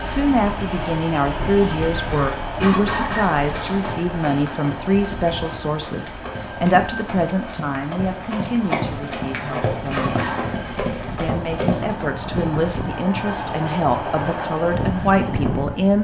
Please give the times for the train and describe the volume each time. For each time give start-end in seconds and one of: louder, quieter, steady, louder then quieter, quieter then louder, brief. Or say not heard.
0.0-15.9 quieter then louder.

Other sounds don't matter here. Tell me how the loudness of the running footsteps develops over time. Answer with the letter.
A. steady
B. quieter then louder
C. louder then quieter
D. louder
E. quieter
D.